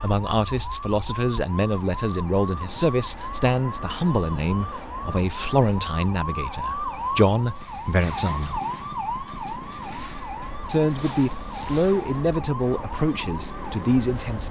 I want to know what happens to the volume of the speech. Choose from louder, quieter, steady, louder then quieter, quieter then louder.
steady.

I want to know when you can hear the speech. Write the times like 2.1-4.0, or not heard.
0.0-8.6, 10.7-14.4.